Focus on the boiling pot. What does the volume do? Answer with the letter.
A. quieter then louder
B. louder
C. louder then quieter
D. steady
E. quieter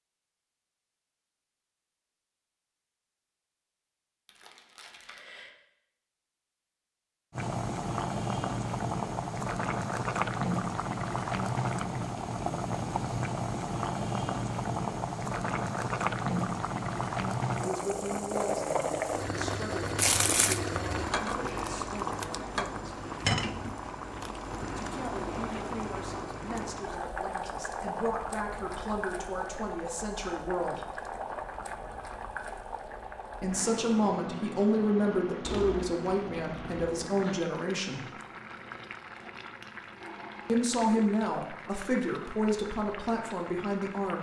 E.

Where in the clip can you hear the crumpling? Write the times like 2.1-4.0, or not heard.
4.2-5.5, 19.9-20.6, 35.4-37.0.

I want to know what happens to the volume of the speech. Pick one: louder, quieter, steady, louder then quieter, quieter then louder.
louder.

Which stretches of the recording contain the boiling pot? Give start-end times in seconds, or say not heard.
7.3-44.1.